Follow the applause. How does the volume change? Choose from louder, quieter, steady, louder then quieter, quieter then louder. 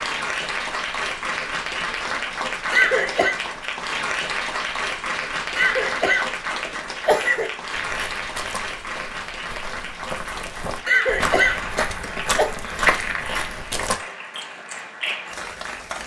quieter.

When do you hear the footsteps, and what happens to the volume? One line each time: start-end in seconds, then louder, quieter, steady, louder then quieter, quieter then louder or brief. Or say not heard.
7.7-14.0 louder.